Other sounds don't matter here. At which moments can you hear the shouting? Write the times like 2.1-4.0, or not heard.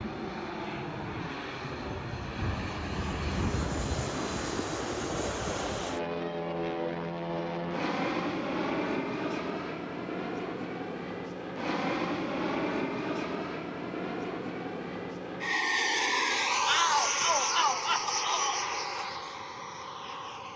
16.6-18.6.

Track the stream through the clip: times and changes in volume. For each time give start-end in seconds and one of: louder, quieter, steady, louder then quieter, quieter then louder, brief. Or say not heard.
not heard.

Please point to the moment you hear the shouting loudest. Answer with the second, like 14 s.
17 s.